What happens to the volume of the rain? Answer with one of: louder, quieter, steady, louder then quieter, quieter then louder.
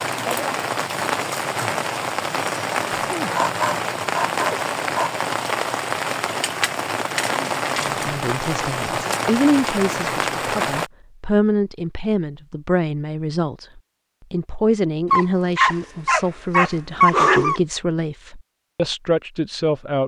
steady.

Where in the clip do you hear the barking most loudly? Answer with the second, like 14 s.
17 s.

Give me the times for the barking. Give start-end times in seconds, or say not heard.
3.3-5.2, 15.1-17.6.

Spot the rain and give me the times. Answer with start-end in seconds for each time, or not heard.
0.0-10.9.